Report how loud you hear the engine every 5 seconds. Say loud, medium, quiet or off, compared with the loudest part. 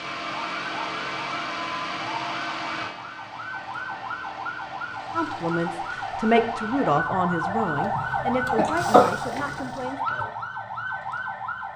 loud, medium, off.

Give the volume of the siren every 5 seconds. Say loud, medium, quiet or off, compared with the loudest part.
medium, loud, loud.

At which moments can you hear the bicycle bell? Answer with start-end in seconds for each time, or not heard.
not heard.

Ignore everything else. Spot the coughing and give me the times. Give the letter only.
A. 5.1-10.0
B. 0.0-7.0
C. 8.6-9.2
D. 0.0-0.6
C.